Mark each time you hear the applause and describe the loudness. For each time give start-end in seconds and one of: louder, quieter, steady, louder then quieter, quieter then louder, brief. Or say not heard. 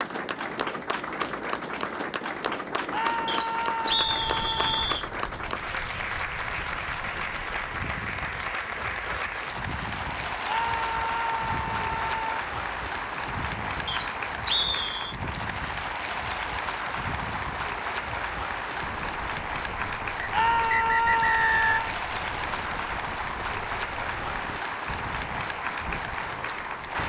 0.0-27.0 steady.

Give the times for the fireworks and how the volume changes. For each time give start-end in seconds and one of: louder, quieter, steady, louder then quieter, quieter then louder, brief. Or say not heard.
not heard.